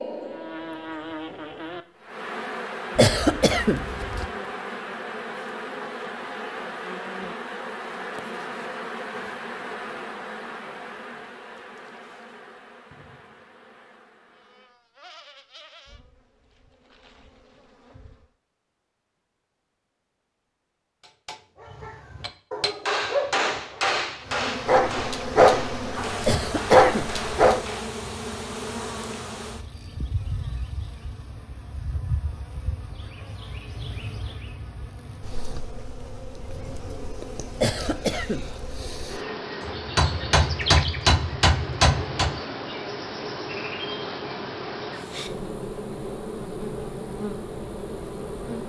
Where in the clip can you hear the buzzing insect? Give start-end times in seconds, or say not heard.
0.0-18.4, 24.2-48.6.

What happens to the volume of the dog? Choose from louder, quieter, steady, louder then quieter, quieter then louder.
quieter then louder.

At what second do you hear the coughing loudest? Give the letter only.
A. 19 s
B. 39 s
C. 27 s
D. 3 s
D.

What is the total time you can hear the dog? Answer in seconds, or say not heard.
6 s.